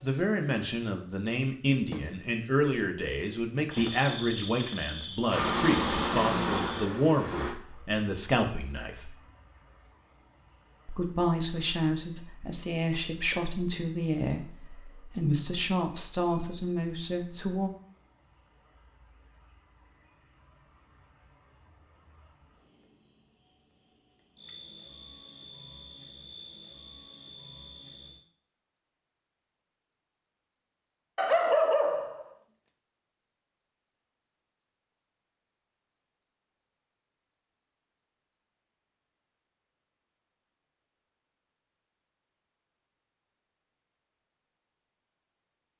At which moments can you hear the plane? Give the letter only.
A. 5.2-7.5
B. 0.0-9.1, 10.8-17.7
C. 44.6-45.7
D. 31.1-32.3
A.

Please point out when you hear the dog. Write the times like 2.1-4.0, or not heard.
31.1-32.3.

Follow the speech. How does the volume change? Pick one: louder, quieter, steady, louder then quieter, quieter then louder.
steady.